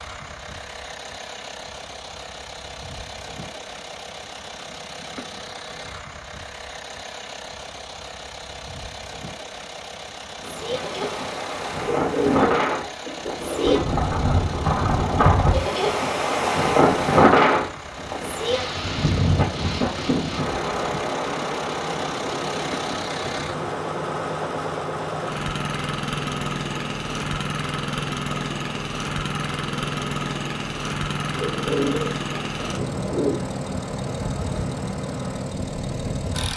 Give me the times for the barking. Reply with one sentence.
The barking can't be heard in this clip.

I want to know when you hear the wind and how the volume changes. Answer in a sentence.
The wind can be heard from 10.3 to 36.5 s, getting quieter.